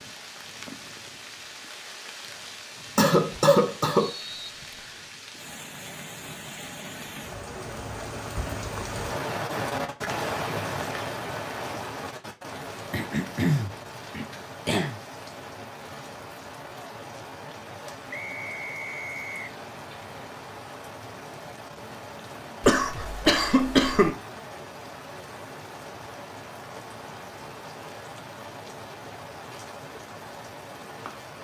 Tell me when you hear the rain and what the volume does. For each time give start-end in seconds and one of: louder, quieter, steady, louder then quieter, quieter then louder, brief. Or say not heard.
0.0-31.3 louder then quieter.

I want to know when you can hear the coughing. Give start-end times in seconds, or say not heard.
3.0-4.2, 12.9-15.0, 22.6-24.1.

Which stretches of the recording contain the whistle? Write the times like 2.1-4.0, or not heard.
4.0-5.1, 18.1-19.6.